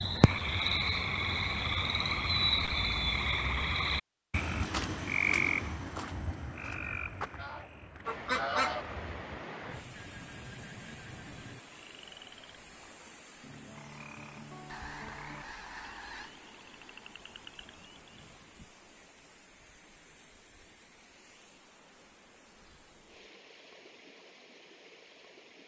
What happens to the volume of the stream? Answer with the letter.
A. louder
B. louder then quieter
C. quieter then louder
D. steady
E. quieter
E.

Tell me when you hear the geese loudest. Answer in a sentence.
The loudest moment of the geese is at 8 seconds.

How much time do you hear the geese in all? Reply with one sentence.
You can hear the geese for 4 seconds altogether.